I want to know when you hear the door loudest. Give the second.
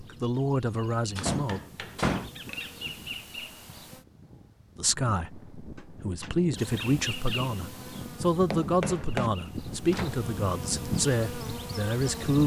2 s.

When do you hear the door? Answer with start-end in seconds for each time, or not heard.
1.1-2.3, 5.8-6.3, 9.8-10.3.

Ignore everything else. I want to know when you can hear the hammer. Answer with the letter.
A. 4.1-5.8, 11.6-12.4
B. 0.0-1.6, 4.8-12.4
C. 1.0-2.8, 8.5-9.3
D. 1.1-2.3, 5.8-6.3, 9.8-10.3
C.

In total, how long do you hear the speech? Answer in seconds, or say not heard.
9 s.